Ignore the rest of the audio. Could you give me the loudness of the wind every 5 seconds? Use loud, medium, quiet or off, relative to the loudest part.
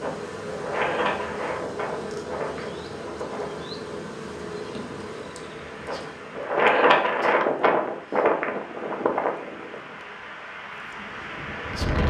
medium, loud, medium.